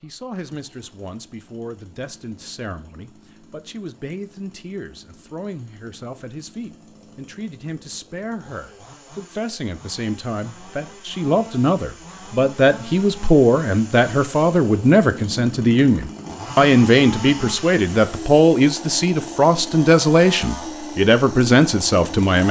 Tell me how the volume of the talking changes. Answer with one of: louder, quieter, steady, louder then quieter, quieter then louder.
louder.